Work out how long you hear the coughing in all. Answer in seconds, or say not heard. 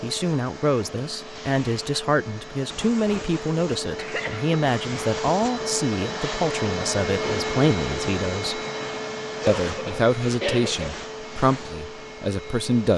2 s.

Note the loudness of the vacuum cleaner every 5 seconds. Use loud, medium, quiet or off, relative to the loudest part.
medium, loud, medium.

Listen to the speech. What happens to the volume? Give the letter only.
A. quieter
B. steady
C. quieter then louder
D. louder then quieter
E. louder
B.